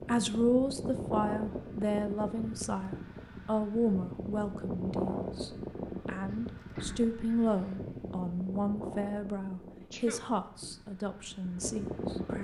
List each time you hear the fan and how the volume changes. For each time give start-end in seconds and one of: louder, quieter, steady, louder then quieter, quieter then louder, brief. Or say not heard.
0.0-12.3 quieter.